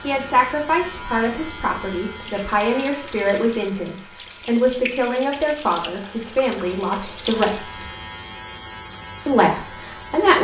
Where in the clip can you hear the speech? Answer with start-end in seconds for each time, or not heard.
0.0-7.8, 9.2-10.3.